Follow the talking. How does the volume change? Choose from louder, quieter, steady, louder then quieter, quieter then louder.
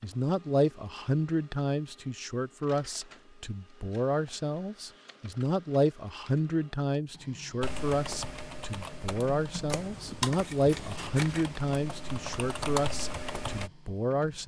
steady.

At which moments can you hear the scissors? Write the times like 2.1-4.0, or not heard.
9.7-11.4.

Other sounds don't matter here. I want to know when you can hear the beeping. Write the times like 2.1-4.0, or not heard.
not heard.